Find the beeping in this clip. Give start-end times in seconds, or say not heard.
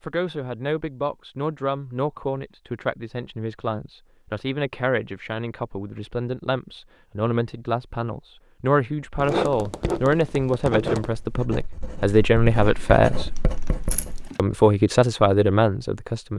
not heard.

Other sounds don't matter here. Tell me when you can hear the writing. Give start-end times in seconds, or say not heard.
9.2-14.3.